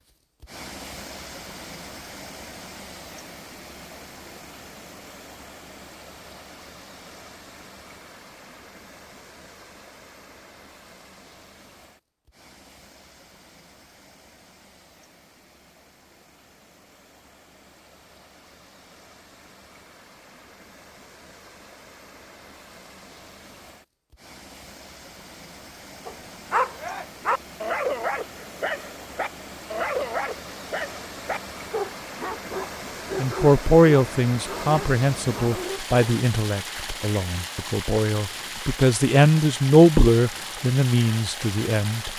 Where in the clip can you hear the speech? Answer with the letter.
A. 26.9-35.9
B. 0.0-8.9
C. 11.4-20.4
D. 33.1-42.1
D.